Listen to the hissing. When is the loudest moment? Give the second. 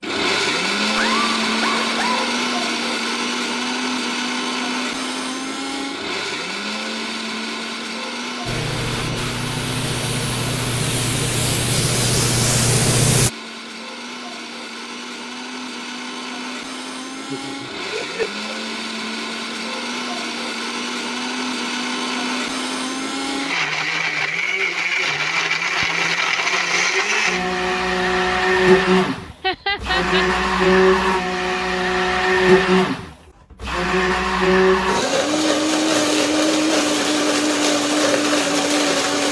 13 s.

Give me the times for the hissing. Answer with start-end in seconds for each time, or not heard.
8.4-13.3.